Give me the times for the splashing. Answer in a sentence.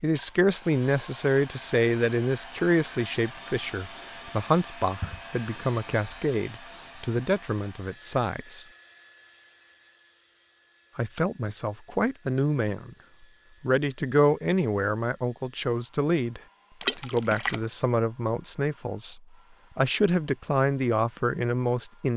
The splashing can be heard from 16.8 to 17.6 s.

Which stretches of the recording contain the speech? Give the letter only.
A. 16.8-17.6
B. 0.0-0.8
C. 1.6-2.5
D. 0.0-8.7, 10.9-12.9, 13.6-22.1
D.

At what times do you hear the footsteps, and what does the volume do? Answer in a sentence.
The footsteps can't be heard in this clip.